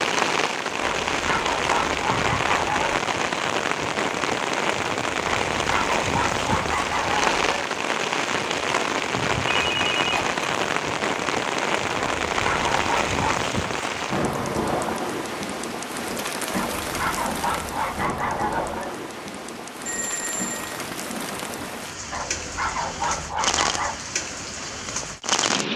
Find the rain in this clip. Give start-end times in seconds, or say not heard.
0.0-25.7.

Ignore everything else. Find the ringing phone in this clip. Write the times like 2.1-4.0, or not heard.
9.4-10.8, 19.9-20.8.